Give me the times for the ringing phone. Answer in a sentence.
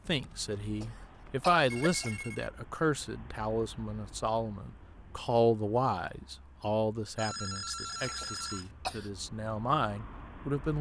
The ringing phone can be heard from 0.1 to 2.5 s and from 7.2 to 8.7 s.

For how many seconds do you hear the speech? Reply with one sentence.
The speech can be heard for 11 seconds in total.